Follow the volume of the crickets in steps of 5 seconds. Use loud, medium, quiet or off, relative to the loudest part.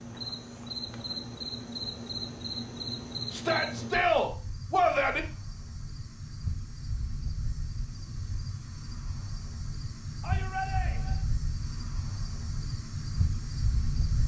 loud, medium, loud.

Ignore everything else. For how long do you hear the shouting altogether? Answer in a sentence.
You can hear the shouting for 3 seconds altogether.